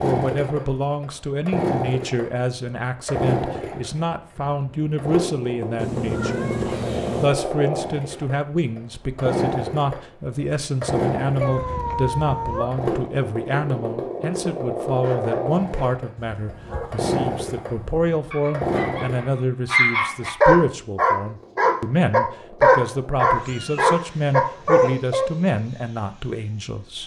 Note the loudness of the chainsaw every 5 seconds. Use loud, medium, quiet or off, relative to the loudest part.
loud, loud, loud, loud, quiet, quiet.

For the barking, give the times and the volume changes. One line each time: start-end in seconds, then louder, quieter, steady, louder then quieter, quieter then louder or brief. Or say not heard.
15.0-25.2 louder.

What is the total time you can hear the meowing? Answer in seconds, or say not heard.
4 s.